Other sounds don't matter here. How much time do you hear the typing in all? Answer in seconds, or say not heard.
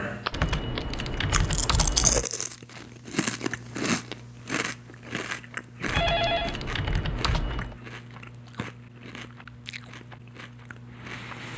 4 s.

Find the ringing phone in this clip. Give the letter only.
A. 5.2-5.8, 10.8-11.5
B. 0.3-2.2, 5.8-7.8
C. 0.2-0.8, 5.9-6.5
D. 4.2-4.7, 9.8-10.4
C.